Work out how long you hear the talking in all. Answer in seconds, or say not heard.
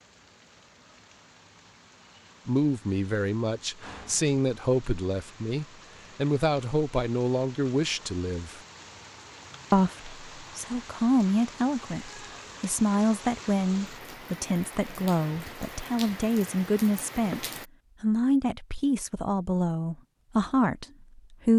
18 s.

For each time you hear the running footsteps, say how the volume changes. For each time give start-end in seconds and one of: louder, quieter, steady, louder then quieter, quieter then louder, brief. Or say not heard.
not heard.